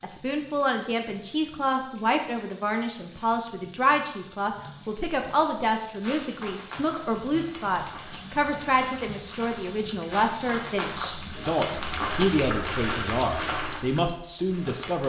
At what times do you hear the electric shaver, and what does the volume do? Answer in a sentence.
The electric shaver can't be heard in this clip.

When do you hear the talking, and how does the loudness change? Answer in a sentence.
You can hear the talking from 0.0 to 15.0 s, at a steady volume.